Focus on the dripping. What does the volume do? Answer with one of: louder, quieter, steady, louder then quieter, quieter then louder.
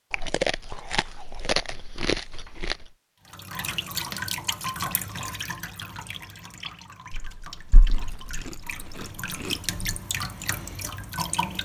quieter then louder.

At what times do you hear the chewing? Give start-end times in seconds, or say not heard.
0.1-2.9, 7.1-9.8.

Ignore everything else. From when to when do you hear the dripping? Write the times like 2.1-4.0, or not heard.
3.2-11.5.